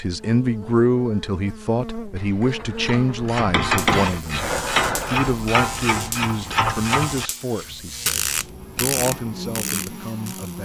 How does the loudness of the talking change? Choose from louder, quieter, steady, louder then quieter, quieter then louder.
quieter.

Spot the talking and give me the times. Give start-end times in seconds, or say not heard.
0.0-10.6.